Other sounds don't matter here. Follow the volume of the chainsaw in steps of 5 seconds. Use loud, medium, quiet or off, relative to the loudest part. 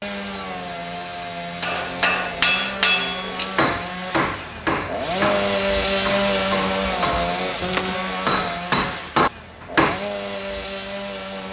medium, loud, medium.